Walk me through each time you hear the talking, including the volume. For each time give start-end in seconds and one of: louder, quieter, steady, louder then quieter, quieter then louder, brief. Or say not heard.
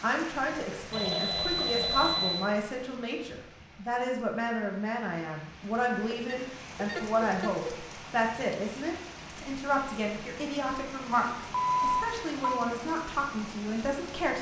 0.0-14.3 steady.